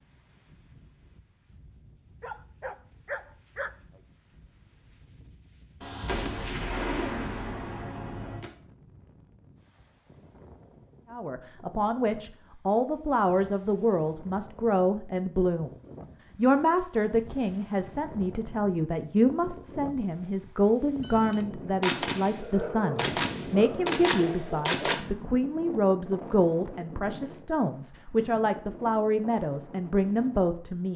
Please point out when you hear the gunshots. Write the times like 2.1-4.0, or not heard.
5.8-8.5, 21.0-25.0.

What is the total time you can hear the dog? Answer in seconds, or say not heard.
4 s.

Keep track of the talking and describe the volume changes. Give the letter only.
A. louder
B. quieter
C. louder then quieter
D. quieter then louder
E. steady
E.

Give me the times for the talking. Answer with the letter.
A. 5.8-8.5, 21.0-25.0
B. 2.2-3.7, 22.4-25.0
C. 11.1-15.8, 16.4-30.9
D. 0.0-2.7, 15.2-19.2
C.